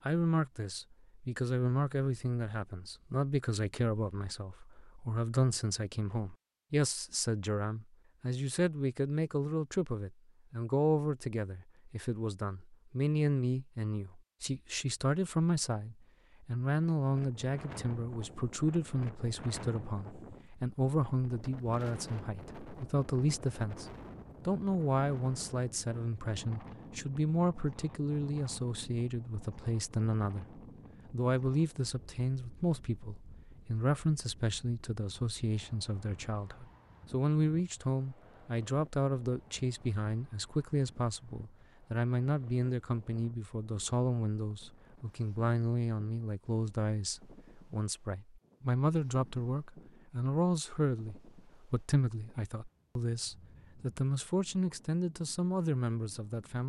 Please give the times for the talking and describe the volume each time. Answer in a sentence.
The talking can be heard from 0.1 to 23.9 s, at a steady volume; and from 24.4 to 56.6 s, at a steady volume.